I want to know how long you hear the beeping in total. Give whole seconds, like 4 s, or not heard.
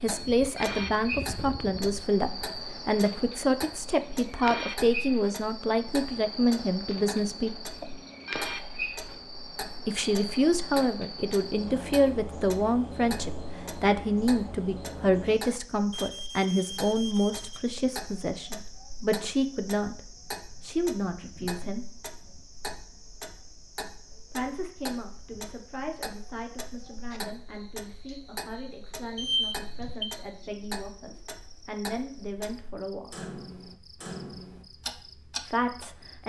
5 s.